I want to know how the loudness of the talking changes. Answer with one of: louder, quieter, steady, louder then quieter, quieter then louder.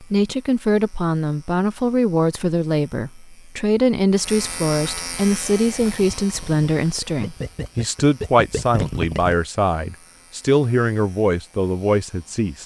steady.